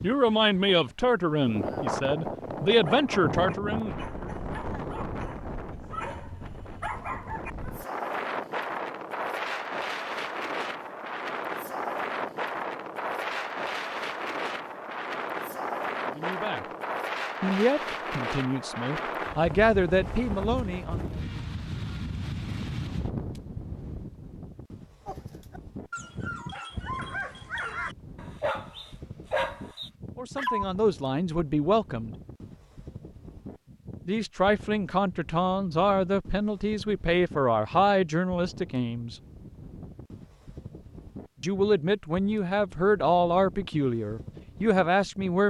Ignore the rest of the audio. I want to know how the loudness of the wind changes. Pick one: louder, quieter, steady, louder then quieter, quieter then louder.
quieter.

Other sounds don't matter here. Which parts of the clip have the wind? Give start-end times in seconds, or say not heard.
0.0-45.4.